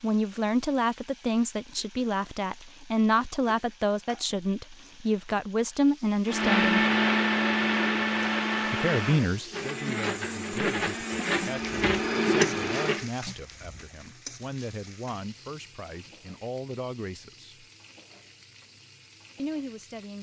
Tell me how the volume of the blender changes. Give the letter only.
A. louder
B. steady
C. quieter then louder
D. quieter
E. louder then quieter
C.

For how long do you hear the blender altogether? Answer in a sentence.
The blender can be heard for 7 seconds in total.